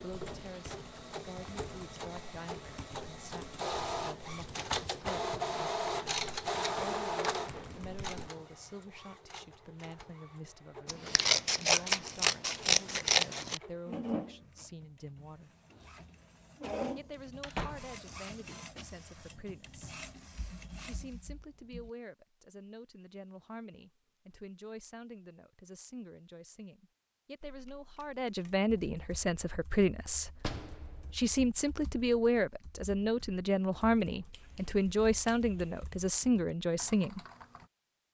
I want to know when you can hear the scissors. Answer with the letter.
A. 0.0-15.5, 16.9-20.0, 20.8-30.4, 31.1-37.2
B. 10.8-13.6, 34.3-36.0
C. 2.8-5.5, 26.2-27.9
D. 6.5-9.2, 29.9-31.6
B.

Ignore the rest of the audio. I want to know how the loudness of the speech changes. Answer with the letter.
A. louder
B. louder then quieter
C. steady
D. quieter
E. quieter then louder
A.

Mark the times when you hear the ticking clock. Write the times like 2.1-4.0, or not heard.
not heard.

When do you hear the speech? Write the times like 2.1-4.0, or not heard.
0.0-15.5, 16.9-20.0, 20.8-30.4, 31.1-37.2.